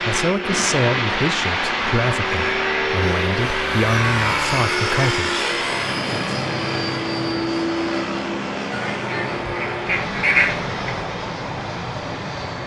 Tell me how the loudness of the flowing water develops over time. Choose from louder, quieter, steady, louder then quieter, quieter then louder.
quieter.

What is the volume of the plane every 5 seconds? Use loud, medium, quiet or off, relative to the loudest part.
loud, loud, medium.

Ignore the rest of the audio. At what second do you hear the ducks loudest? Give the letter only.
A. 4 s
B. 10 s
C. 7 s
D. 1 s
B.